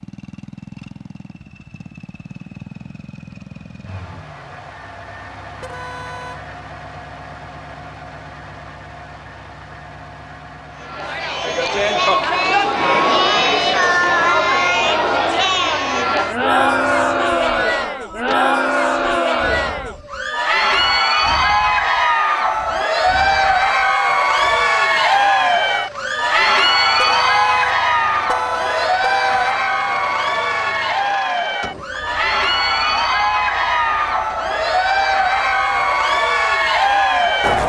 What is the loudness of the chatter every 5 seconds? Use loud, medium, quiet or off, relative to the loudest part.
off, off, loud, loud, loud, loud, loud, loud.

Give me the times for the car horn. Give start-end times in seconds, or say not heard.
5.6-6.5, 26.9-29.6.